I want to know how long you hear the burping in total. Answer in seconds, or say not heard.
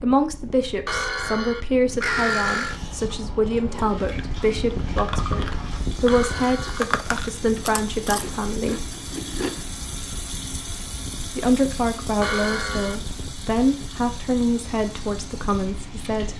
4 s.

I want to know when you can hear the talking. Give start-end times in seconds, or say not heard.
0.0-8.8, 11.3-16.3.